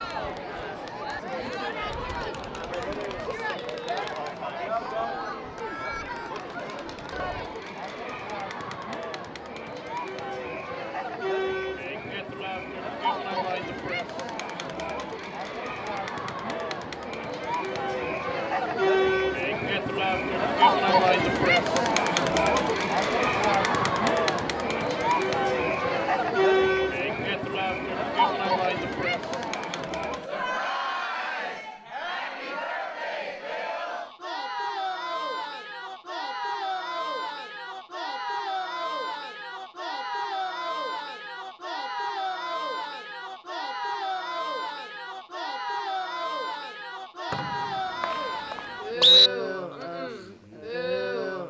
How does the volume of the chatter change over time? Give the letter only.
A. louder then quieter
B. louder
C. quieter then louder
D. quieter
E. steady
A.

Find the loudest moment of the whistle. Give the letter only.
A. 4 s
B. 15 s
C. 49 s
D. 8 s
C.